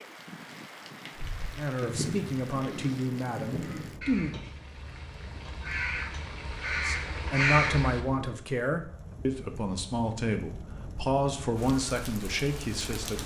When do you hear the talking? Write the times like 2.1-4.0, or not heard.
1.6-4.3, 6.8-13.2.